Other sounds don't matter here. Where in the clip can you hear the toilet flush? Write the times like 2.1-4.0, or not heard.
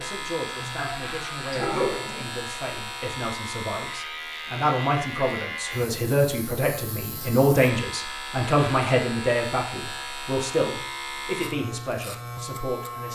0.6-2.2.